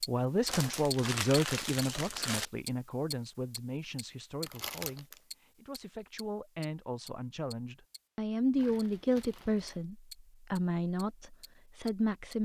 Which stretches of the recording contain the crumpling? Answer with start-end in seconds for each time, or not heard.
0.5-2.5, 4.4-5.2, 8.6-9.8.